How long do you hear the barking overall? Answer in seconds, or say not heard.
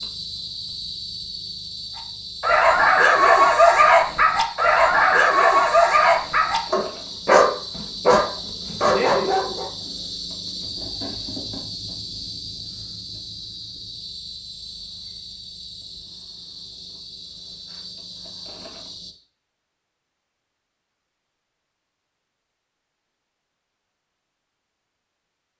8 s.